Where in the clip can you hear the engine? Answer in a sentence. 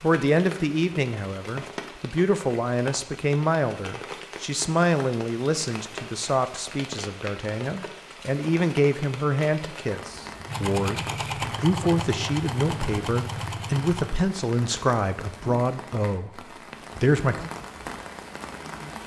You can hear the engine from 10.4 to 14.1 s.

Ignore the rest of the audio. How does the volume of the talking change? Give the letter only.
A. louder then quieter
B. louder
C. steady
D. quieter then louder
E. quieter
C.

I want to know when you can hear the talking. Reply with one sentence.
You can hear the talking from 0.0 to 17.5 s.